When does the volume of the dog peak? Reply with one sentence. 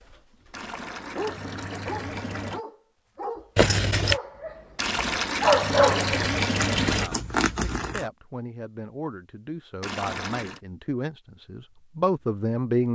The volume of the dog peaks at 6 seconds.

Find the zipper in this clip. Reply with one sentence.
You can hear the zipper from 3.5 to 4.2 s and from 6.7 to 8.1 s.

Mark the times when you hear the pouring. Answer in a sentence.
The pouring can be heard from 0.5 to 2.6 s, from 4.8 to 7.1 s and from 9.8 to 10.6 s.